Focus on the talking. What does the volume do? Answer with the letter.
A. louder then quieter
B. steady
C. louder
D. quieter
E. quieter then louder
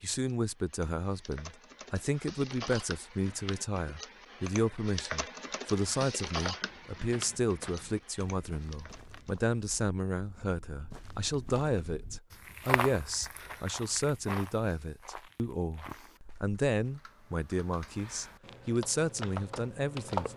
B.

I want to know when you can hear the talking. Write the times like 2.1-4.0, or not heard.
0.0-20.3.